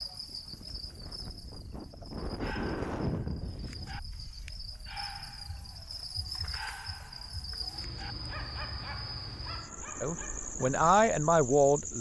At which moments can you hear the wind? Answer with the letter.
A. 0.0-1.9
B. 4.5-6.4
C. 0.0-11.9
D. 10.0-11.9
C.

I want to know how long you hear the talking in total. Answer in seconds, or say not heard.
2 s.